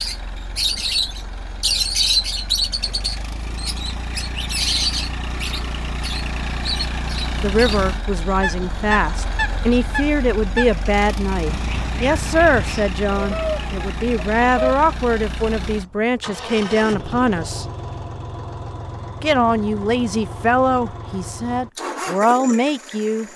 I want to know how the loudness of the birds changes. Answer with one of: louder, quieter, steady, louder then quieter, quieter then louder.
quieter.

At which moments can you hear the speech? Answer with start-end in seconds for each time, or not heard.
7.4-17.6, 19.2-23.3.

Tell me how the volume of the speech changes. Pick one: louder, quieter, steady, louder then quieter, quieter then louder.
steady.